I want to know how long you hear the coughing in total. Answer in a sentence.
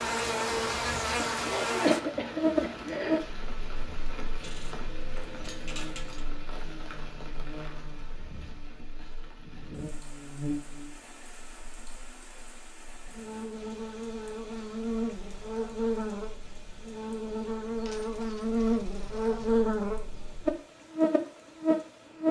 You can hear the coughing for 2 seconds altogether.